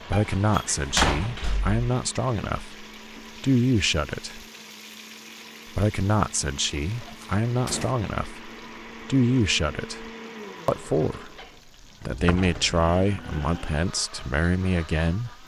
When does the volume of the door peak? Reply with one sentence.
The volume of the door peaks at 1 second.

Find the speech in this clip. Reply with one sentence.
You can hear the speech from 0.0 to 4.5 s, from 5.8 to 11.3 s and from 12.1 to 15.4 s.